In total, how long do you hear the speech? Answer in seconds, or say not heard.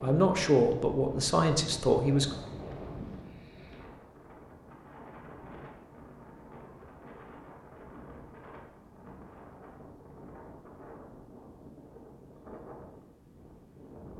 2 s.